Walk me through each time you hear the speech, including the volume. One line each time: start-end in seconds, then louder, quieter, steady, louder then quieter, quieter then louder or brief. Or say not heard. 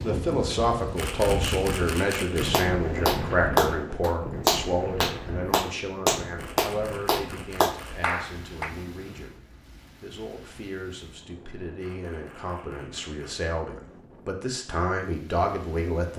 0.0-16.1 quieter then louder.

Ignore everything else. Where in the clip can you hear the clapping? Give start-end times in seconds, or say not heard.
2.5-8.7.